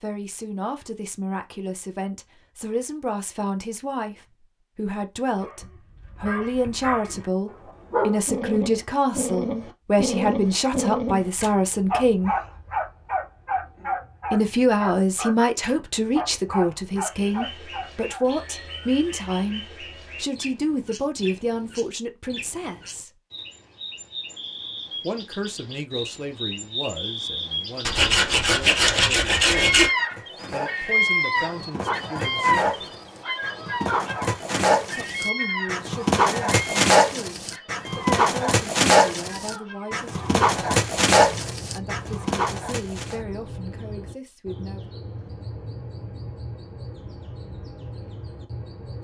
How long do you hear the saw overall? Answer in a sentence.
You can hear the saw for 2 seconds altogether.